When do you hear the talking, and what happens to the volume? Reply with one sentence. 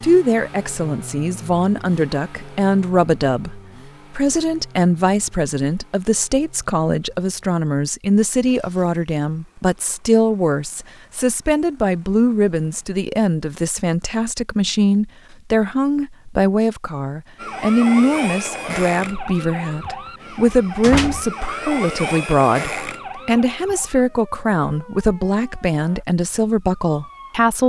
You can hear the talking from 0.0 to 27.6 s, at a steady volume.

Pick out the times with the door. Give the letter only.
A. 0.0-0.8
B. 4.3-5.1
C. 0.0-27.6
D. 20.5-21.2
D.